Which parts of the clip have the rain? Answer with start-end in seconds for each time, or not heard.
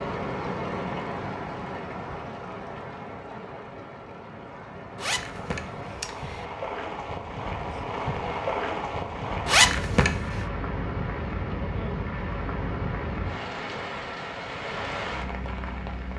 0.0-16.1.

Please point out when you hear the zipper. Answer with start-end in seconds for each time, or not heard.
5.0-6.5, 9.4-10.4.